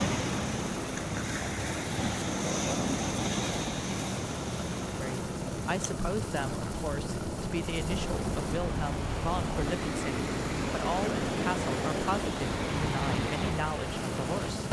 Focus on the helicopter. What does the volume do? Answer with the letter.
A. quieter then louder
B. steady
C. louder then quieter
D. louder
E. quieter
B.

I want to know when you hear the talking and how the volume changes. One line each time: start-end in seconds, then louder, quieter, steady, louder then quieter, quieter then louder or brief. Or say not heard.
5.0-14.6 steady.